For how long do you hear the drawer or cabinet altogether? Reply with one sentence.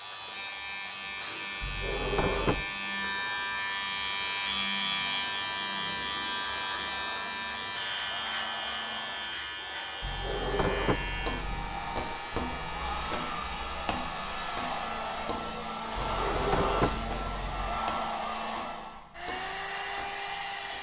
You can hear the drawer or cabinet for 5 seconds altogether.